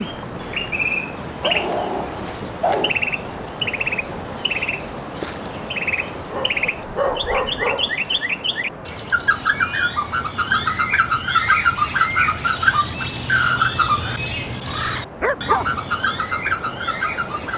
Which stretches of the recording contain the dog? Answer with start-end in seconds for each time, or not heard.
1.4-2.9, 6.3-7.9, 15.2-15.8.